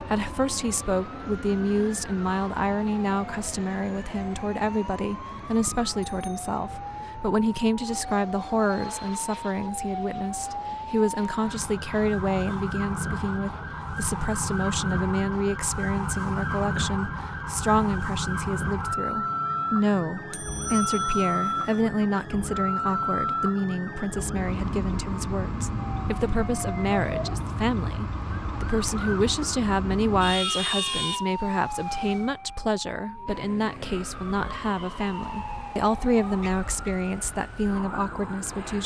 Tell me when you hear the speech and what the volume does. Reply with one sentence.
You can hear the speech from 0.0 to 38.8 s, at a steady volume.